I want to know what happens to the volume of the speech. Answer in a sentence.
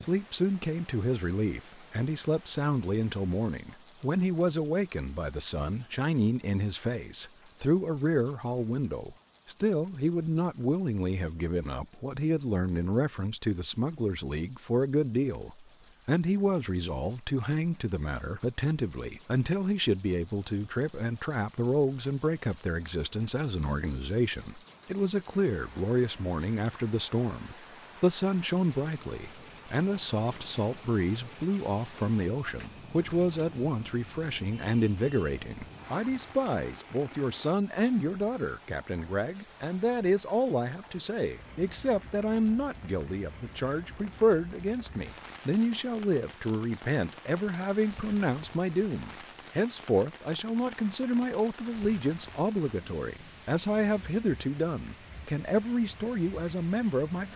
The volume of the speech stays about the same.